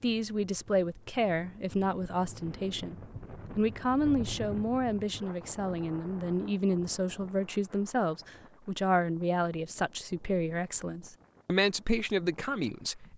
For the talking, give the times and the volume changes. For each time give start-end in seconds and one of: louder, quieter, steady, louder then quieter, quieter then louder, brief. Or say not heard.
0.0-3.0 brief
3.5-13.1 steady.